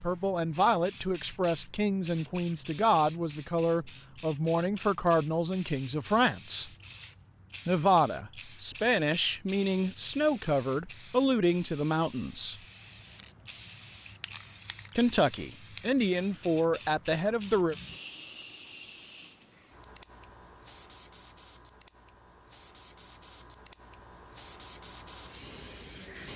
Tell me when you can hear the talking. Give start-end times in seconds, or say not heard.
0.0-6.7, 7.7-12.6, 14.9-17.8.